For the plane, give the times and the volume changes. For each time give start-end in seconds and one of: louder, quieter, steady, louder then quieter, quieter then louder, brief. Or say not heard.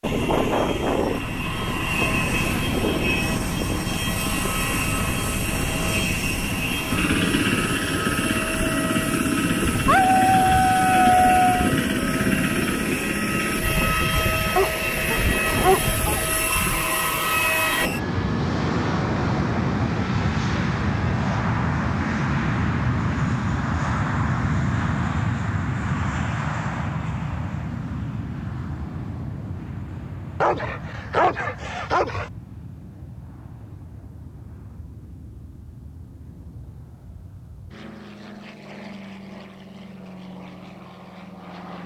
0.0-41.8 quieter.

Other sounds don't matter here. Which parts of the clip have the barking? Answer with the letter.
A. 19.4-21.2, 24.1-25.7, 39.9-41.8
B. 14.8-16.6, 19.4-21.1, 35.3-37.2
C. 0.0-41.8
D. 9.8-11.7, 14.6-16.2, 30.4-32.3
D.